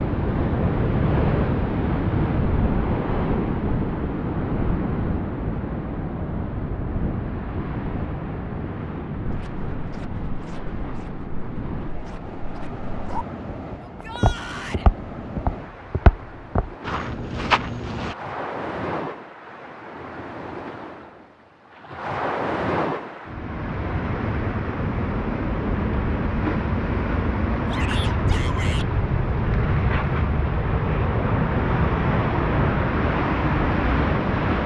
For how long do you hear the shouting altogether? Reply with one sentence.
You can hear the shouting for 2 seconds altogether.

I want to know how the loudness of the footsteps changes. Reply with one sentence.
The volume of the footsteps goes up.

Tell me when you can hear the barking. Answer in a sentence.
You can't hear the barking here.